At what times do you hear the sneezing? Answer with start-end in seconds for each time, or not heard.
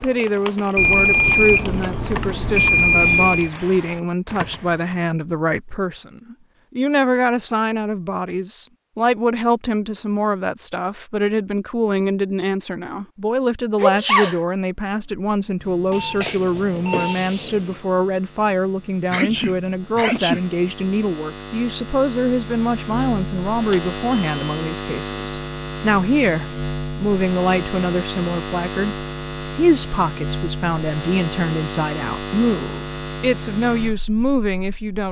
13.8-14.4, 19.1-20.4.